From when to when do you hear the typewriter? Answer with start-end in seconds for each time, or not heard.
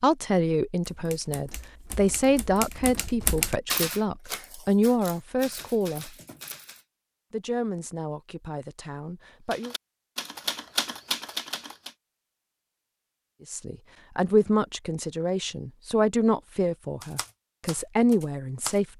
0.9-6.8, 9.5-11.9, 17.0-18.8.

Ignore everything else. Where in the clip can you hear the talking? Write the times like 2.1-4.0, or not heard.
0.0-6.2, 7.3-9.8, 13.4-18.9.